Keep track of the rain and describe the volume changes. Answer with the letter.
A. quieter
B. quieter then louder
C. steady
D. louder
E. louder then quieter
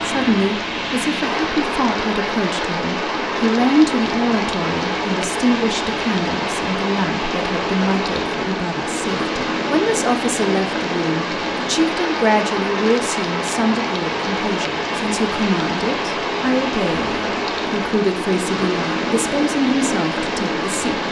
C.